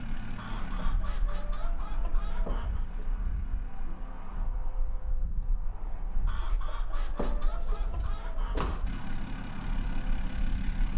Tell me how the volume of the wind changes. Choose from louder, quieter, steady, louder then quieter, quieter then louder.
steady.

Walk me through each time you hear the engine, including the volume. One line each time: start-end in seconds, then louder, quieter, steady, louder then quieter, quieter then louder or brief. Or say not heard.
0.0-4.5 quieter
8.8-10.9 brief.